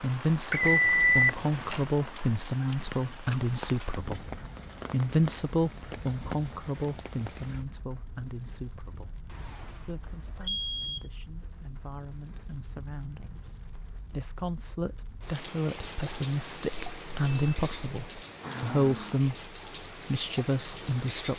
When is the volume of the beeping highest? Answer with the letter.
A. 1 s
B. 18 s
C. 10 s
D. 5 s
A.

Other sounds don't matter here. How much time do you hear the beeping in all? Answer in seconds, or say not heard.
4 s.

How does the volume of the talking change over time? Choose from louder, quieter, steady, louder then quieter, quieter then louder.
quieter then louder.